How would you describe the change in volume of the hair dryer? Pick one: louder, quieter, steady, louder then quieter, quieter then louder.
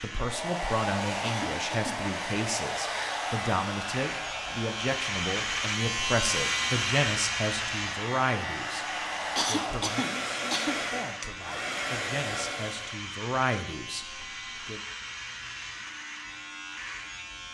quieter then louder.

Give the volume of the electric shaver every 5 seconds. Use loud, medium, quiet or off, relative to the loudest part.
medium, loud, medium, medium.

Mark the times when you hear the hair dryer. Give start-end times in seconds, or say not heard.
0.0-13.0.